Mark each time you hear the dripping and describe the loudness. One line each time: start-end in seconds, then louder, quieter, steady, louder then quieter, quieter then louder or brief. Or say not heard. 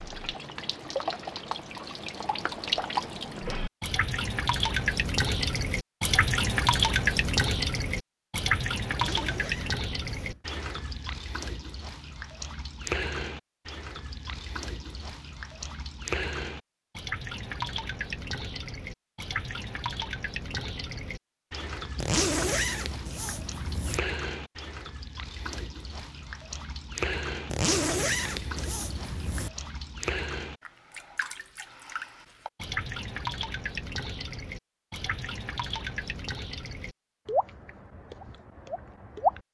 0.0-39.4 quieter.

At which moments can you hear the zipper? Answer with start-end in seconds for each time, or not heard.
8.9-10.4, 21.9-24.0, 27.4-29.5.